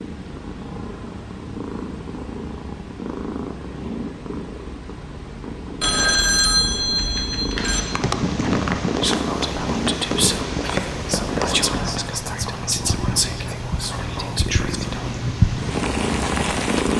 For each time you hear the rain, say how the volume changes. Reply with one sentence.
The rain can be heard from 7.6 to 16.9 s, getting quieter then louder.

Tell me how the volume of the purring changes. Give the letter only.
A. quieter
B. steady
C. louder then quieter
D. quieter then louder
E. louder
E.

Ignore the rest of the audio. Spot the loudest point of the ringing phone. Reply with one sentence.
The volume of the ringing phone peaks at 6 seconds.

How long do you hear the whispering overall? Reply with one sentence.
You can hear the whispering for 6 seconds altogether.